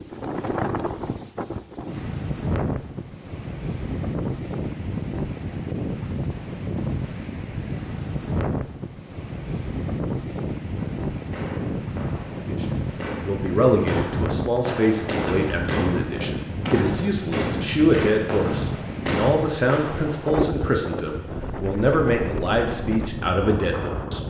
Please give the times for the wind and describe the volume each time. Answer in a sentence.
You can hear the wind from 0.0 to 24.2 s, at a steady volume.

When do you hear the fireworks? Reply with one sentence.
You can hear the fireworks from 10.7 to 20.4 s.